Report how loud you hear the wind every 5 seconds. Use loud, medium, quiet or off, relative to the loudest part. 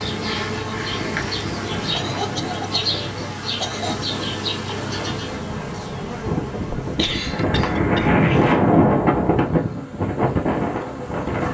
quiet, loud, loud.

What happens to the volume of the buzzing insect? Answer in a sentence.
The volume of the buzzing insect goes down.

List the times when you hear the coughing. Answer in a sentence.
The coughing can be heard from 1.9 to 4.0 s and from 6.7 to 8.4 s.